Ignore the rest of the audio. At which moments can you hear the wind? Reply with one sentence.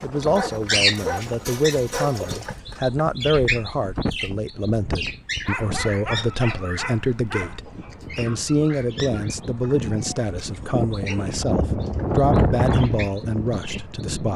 The wind can be heard from 0.0 to 14.3 s.